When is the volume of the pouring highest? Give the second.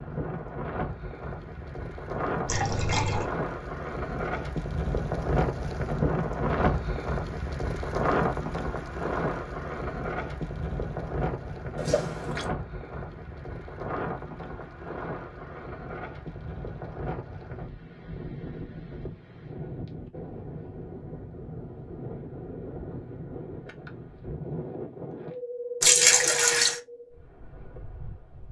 26 s.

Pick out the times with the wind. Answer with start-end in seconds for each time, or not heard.
0.0-28.4.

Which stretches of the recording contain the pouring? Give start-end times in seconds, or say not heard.
2.5-3.2, 11.8-12.5, 25.8-26.8.